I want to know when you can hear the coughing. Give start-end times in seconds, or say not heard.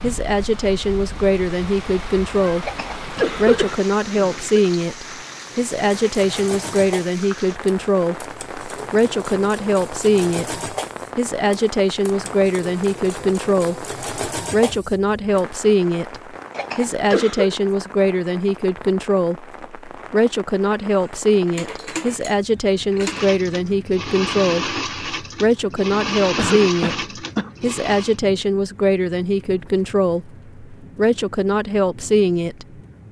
2.6-4.6, 16.5-17.6, 26.4-27.5.